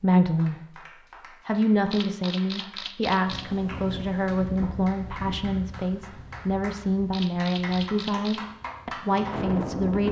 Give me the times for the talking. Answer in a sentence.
The talking can be heard from 0.0 to 0.6 s and from 1.4 to 10.0 s.